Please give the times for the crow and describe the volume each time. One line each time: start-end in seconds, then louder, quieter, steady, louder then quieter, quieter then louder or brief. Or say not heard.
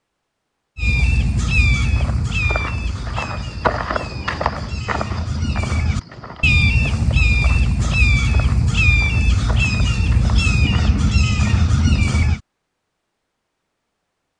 0.8-12.4 quieter then louder.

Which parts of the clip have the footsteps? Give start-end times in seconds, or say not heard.
1.9-12.2.